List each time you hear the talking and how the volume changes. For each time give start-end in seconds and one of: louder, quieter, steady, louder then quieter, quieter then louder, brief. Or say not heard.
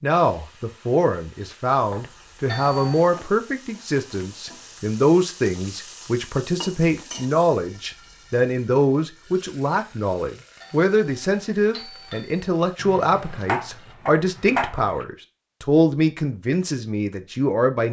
0.0-17.8 steady.